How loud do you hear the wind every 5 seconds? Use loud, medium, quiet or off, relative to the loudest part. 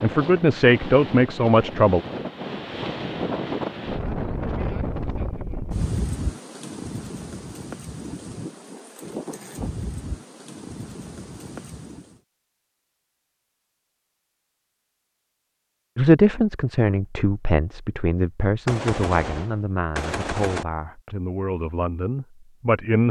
loud, loud, medium, off, off.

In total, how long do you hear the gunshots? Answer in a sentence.
You can hear the gunshots for 2 seconds altogether.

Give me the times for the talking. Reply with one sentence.
The talking can be heard from 0.0 to 2.0 s and from 15.9 to 23.0 s.